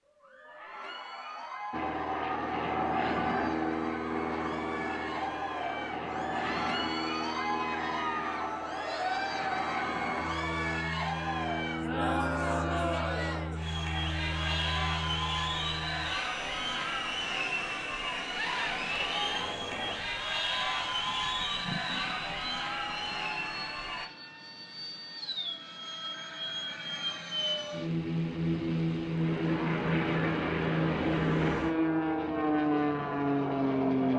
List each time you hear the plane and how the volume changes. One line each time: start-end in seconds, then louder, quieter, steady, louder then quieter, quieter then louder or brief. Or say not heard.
1.7-34.1 quieter then louder.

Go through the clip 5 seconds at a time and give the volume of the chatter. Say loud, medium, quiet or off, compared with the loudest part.
medium, loud, loud, loud, loud, off, off.